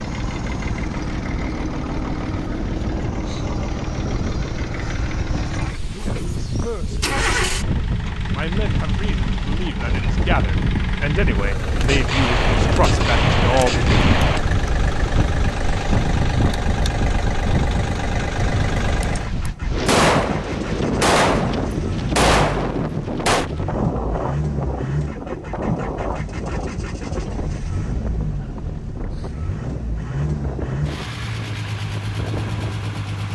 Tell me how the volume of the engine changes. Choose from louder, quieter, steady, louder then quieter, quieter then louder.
steady.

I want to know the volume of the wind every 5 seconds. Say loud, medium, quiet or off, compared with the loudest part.
medium, medium, loud, loud, loud, medium, medium.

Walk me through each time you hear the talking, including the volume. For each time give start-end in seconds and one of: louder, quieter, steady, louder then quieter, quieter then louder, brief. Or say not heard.
5.9-7.1 brief
8.3-13.8 louder.